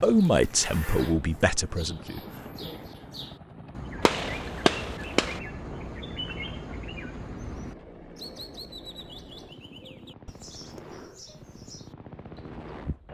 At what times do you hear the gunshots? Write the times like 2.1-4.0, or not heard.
4.0-5.4.